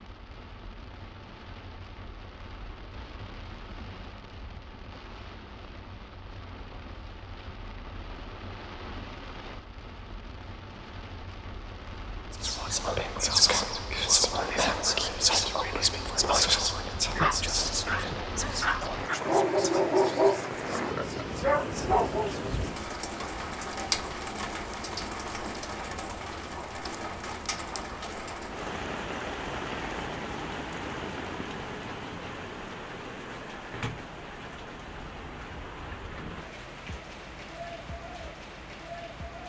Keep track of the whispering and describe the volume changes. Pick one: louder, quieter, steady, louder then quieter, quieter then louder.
quieter.